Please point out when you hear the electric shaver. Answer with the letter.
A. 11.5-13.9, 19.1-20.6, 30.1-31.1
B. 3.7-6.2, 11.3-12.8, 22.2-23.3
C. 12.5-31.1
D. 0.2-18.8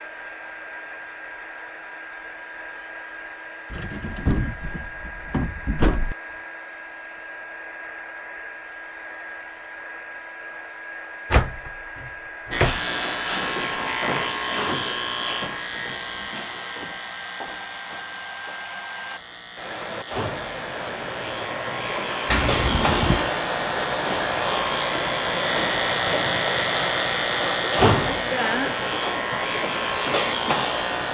C.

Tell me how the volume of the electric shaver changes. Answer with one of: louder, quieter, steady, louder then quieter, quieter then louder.
quieter then louder.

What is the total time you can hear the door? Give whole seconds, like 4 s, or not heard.
5 s.